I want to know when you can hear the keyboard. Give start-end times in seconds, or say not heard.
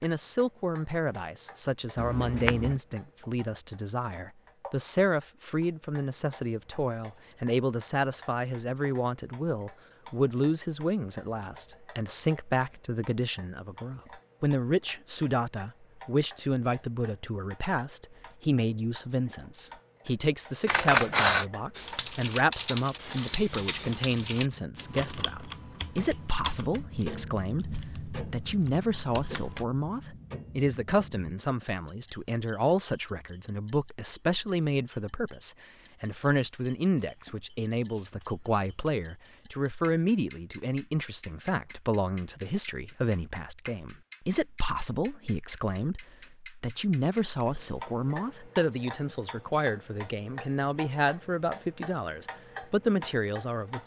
21.8-29.6.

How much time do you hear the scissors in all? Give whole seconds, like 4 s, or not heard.
4 s.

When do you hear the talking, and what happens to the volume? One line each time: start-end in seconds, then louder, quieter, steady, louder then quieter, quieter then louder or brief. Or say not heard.
0.0-53.8 steady.